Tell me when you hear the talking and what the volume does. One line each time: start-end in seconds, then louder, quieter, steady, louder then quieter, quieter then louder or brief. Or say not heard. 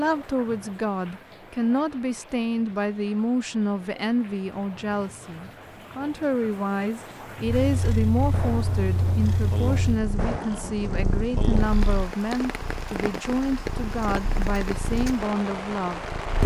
0.0-16.1 steady.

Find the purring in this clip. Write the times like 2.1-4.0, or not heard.
7.5-16.4.